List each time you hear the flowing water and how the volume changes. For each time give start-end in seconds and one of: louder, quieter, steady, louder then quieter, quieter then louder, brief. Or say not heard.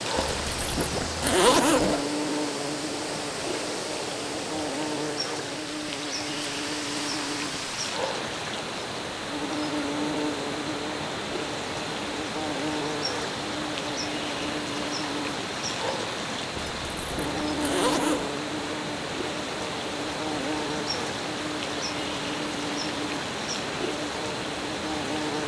0.0-25.4 steady.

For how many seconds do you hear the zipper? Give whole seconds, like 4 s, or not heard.
4 s.